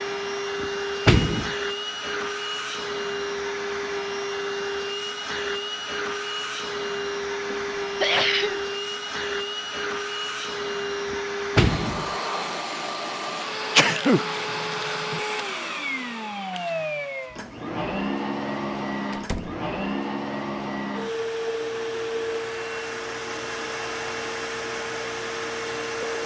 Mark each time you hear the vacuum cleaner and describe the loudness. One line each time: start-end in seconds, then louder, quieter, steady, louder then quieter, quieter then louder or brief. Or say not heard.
0.0-26.2 steady.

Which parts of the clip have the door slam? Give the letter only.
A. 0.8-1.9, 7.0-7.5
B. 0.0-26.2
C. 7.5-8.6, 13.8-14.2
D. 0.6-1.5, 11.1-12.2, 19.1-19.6
D.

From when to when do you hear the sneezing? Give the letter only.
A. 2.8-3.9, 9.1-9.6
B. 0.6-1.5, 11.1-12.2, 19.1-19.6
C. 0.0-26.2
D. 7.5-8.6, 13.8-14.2
D.